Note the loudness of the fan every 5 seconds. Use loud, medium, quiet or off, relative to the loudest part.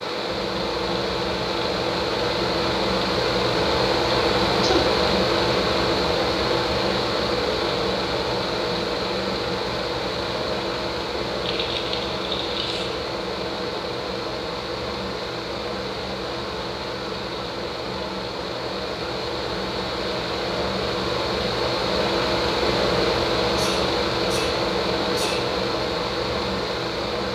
loud, loud, medium, medium, loud, loud.